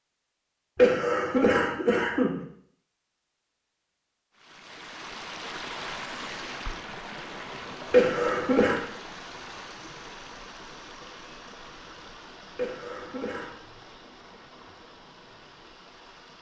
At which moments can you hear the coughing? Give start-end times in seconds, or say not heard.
0.8-2.4, 7.9-8.8, 12.6-13.6.